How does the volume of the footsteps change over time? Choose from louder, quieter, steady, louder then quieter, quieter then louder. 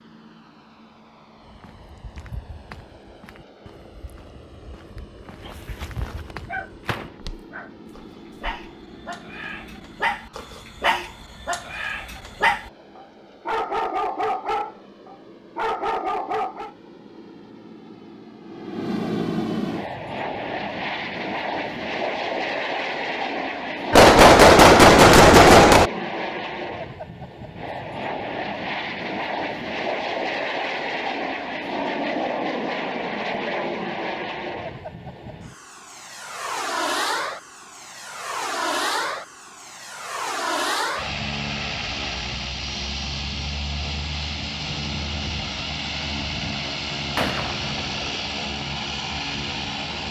quieter then louder.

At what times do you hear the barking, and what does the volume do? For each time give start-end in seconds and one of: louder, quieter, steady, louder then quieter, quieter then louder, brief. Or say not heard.
5.4-16.7 louder.